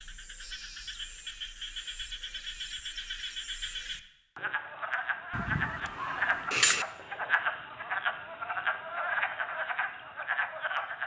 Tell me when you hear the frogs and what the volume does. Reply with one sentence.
You can hear the frogs from 0.0 to 11.0 s, getting louder.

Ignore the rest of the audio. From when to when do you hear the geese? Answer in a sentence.
You can hear the geese from 5.3 to 6.8 s.